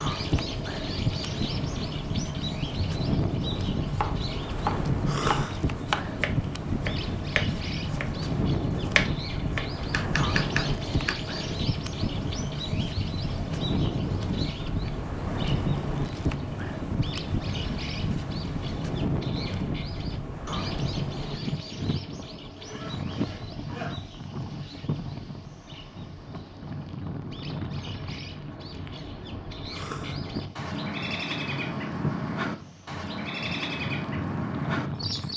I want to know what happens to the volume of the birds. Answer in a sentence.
The loudness of the birds goes down, then up.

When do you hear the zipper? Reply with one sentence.
The zipper can be heard from 22.6 to 24.0 s.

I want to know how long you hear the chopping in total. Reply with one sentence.
The chopping can be heard for 7 seconds in total.